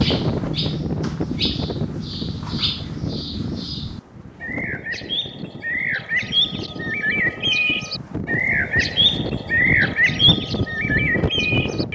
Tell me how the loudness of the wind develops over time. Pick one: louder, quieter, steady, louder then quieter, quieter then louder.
quieter then louder.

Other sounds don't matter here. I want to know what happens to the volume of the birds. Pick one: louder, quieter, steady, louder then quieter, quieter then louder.
louder.